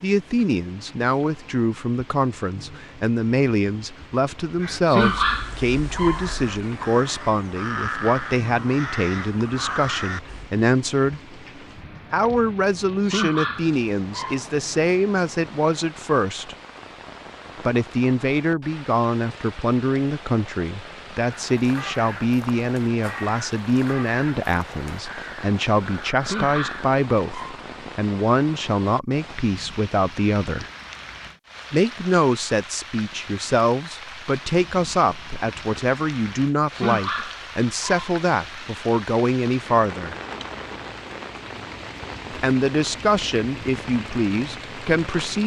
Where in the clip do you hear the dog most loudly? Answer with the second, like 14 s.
5 s.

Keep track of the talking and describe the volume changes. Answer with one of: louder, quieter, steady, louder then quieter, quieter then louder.
steady.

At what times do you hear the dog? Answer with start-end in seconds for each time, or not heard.
4.8-6.4, 13.1-14.6, 26.2-27.6, 36.8-38.0.